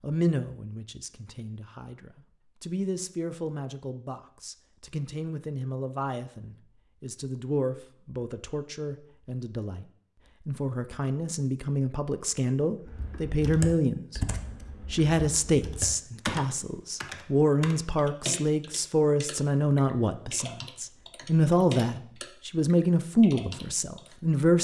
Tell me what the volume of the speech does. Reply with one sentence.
The loudness of the speech goes up.